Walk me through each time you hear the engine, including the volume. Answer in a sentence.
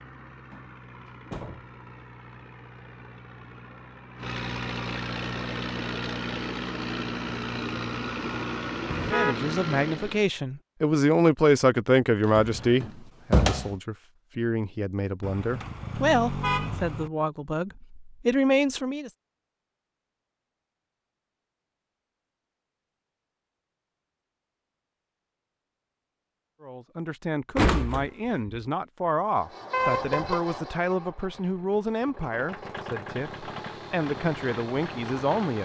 The engine can be heard from 0.0 to 10.3 s, getting louder; and from 29.4 to 35.5 s, getting quieter then louder.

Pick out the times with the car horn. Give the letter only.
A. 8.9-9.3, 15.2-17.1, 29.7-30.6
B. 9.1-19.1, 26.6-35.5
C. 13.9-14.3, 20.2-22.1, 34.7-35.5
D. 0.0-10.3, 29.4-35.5
A.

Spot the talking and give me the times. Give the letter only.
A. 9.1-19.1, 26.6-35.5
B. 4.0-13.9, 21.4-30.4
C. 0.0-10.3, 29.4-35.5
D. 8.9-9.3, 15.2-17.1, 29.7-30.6
A.